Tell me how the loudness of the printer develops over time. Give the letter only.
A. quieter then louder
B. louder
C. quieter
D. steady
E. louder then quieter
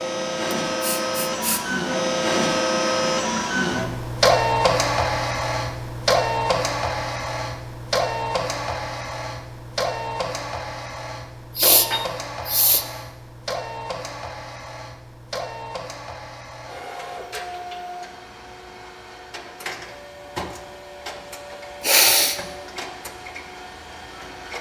C.